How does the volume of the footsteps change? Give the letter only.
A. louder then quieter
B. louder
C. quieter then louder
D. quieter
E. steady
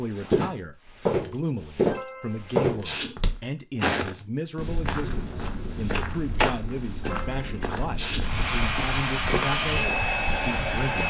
D.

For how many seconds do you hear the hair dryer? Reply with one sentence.
The hair dryer can be heard for 3 seconds in total.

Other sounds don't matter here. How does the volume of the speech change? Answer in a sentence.
The volume of the speech stays about the same.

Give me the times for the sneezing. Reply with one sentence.
The sneezing can be heard from 1.9 to 3.1 s and from 7.0 to 8.3 s.